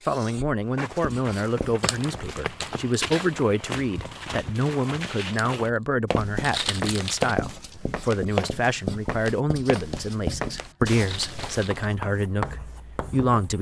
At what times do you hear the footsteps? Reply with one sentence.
The footsteps can be heard from 0.8 to 11.7 s.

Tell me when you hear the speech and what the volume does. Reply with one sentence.
The speech can be heard from 0.1 to 13.5 s, at a steady volume.